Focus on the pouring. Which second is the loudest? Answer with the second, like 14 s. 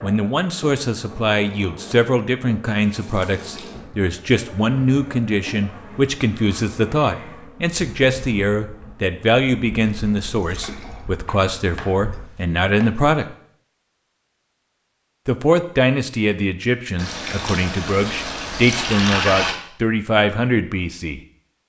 19 s.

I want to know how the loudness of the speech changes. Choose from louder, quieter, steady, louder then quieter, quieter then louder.
steady.